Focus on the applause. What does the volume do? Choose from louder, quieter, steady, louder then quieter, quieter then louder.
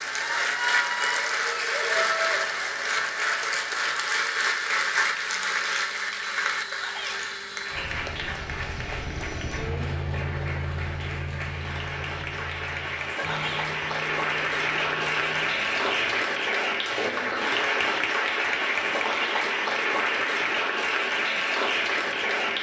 quieter then louder.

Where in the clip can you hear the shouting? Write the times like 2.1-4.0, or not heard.
6.6-7.2, 13.1-13.7.